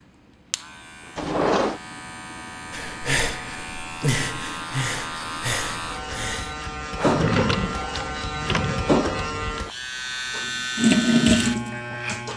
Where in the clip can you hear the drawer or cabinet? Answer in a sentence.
The drawer or cabinet can be heard from 1.1 to 1.8 s and from 7.1 to 9.0 s.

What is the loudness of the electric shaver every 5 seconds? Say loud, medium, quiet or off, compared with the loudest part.
medium, loud, loud.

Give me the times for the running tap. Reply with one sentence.
The running tap can be heard from 10.8 to 12.3 s.